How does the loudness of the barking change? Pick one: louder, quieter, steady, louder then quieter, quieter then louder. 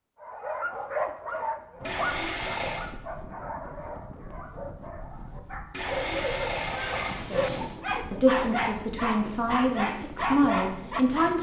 quieter then louder.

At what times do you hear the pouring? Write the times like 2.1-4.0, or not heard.
1.8-2.9, 5.7-7.8.